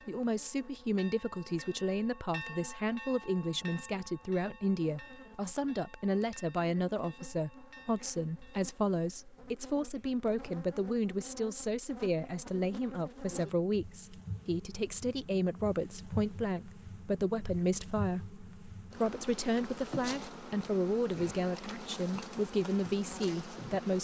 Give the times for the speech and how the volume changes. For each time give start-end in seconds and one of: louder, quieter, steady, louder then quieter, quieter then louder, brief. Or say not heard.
0.1-23.9 steady.